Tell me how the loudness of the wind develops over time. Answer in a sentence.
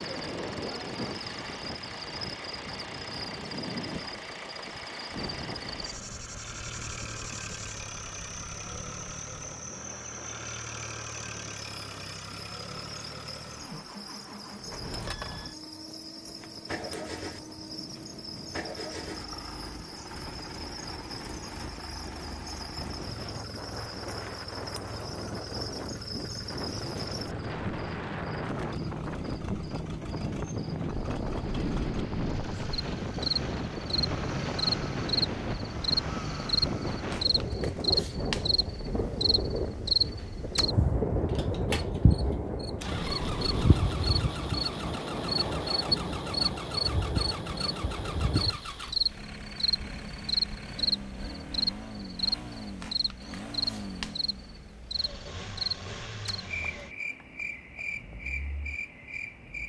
The loudness of the wind goes down, then up.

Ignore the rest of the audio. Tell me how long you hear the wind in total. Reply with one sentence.
You can hear the wind for 44 seconds altogether.